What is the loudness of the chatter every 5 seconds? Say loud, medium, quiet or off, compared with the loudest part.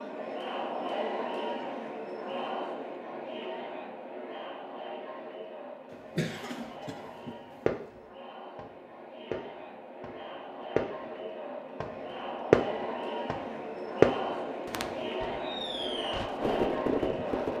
loud, medium, loud, loud.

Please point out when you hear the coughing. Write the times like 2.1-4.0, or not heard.
5.9-7.8.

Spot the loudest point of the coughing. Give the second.
6 s.